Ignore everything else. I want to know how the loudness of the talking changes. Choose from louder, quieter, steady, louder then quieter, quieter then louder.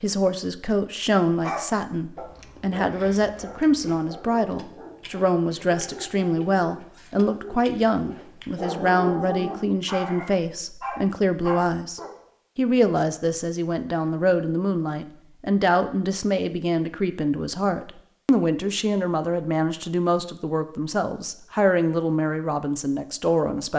steady.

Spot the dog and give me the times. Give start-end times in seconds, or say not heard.
1.4-12.2.